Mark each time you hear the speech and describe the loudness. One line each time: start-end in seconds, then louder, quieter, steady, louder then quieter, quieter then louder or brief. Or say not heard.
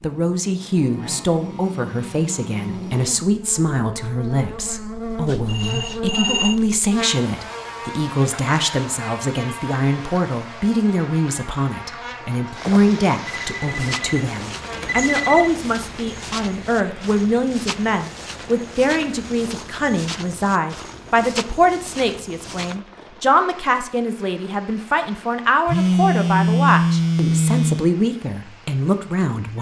0.0-29.5 steady.